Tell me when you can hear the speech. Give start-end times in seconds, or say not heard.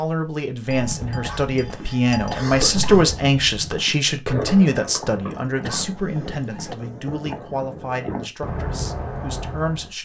0.0-10.0.